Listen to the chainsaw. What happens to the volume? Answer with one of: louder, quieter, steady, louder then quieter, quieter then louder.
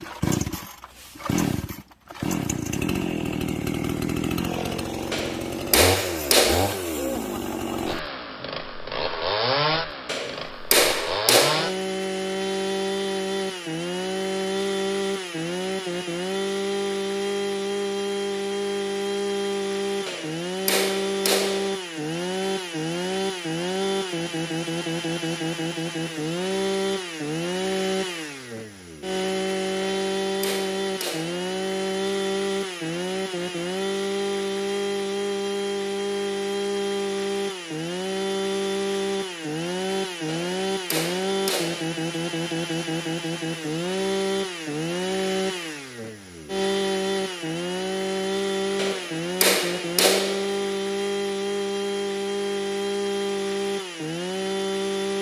steady.